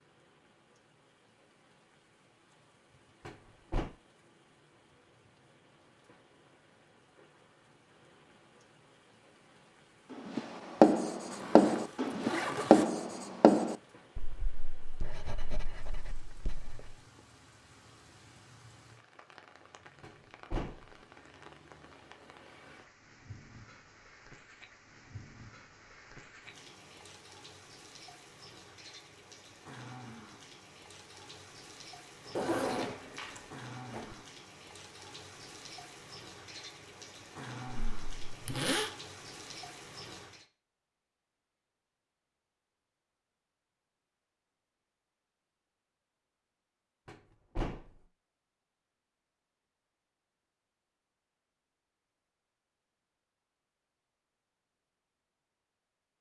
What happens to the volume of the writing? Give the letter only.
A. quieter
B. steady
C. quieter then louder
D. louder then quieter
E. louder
A.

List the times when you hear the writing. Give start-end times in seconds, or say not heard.
10.1-16.9.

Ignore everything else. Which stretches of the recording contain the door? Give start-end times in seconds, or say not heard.
3.2-3.9, 20.0-20.9, 47.0-47.9.